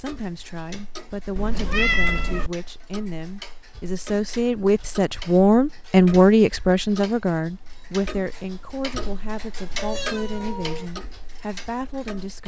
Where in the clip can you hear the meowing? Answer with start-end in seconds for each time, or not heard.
1.4-2.5, 9.7-10.9.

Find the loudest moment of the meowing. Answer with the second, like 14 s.
2 s.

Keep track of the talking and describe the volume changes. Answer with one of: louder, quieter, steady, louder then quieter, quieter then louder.
louder then quieter.